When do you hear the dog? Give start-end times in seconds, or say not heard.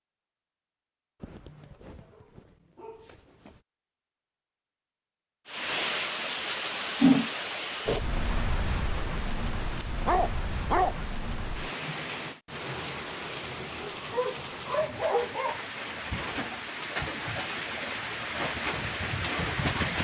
1.2-3.6, 10.1-11.1, 13.8-15.6.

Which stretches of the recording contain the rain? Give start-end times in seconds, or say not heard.
5.5-19.9.